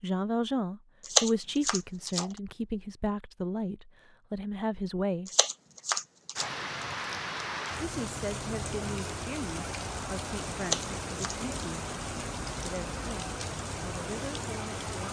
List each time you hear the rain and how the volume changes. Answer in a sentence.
The rain can be heard from 6.3 to 15.0 s, at a steady volume.